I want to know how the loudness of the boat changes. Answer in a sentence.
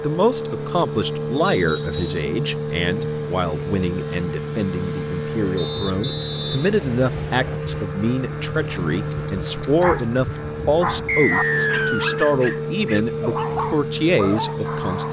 The loudness of the boat stays about the same.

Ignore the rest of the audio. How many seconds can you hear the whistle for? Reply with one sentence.
You can hear the whistle for 4 seconds altogether.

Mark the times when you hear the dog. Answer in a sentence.
You can hear the dog from 8.6 to 15.0 s.